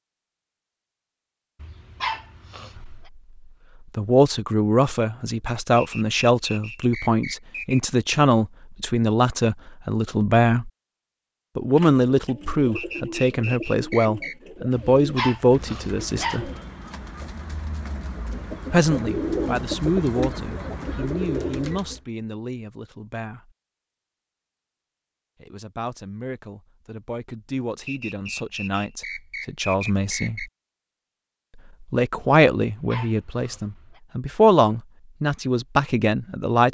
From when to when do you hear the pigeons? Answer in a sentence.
You can hear the pigeons from 11.7 to 22.0 s.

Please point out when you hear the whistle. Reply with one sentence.
You can hear the whistle from 5.8 to 7.8 s, from 12.8 to 14.3 s and from 27.9 to 30.5 s.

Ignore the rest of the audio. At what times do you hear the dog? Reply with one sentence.
The dog can be heard from 1.6 to 3.0 s, from 14.8 to 16.6 s and from 32.7 to 34.0 s.